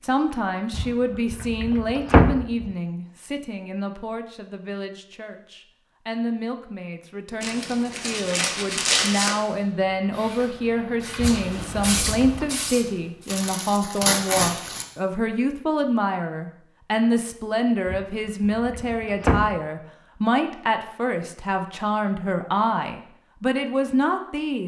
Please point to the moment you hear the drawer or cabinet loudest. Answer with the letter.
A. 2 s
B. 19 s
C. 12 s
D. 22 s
A.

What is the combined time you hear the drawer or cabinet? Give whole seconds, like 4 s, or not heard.
5 s.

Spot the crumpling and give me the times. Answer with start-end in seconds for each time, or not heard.
7.4-9.3, 13.2-14.8.